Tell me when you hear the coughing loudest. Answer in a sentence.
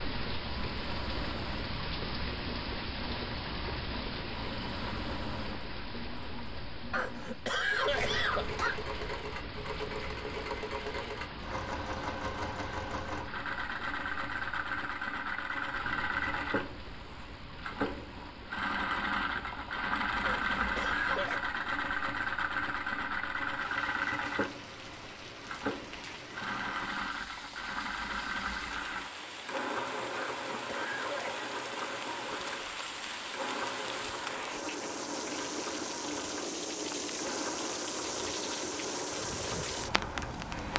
The loudest moment of the coughing is at 8 seconds.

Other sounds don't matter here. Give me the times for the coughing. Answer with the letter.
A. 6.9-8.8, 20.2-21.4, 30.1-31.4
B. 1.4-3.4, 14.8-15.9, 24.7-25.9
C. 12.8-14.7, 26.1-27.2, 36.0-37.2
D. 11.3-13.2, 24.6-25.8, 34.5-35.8
A.